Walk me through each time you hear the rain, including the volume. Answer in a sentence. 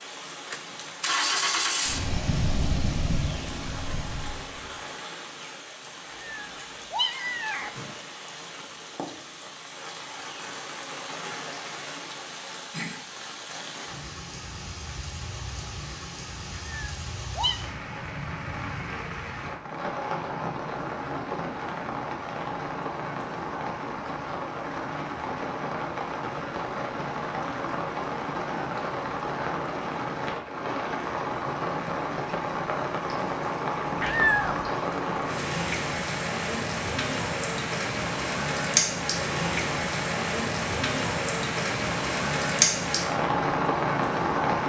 You can hear the rain from 0.0 to 44.6 s, getting louder.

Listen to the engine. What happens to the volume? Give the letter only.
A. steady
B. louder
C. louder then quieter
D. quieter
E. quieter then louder
D.